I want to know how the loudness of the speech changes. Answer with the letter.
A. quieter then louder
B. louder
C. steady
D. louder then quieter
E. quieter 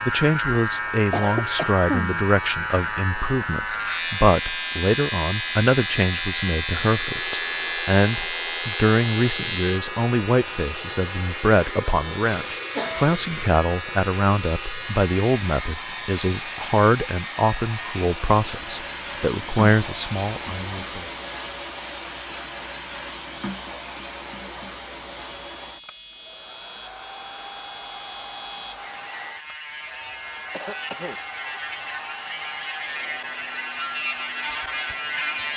C.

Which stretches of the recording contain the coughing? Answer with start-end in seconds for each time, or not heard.
0.8-2.2, 12.7-13.4, 30.5-31.8.